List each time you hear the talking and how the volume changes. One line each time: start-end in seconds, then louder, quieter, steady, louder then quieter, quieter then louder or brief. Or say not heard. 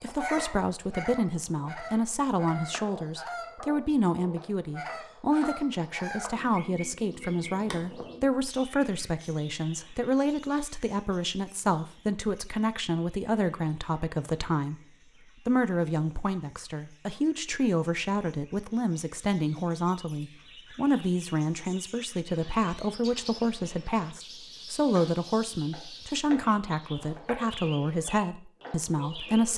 0.0-14.8 steady
15.4-29.5 steady.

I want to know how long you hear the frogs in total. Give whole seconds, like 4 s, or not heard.
not heard.